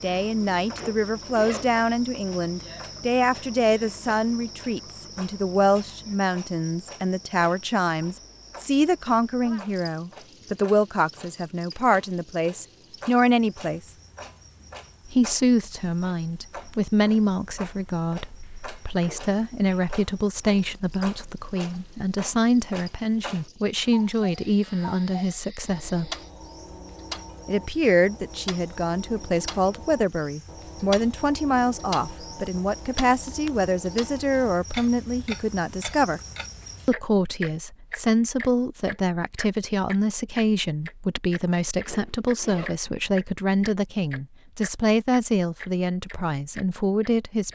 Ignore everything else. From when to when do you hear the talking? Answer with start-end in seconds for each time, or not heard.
0.0-13.9, 15.1-26.1, 27.4-36.2, 36.9-47.5.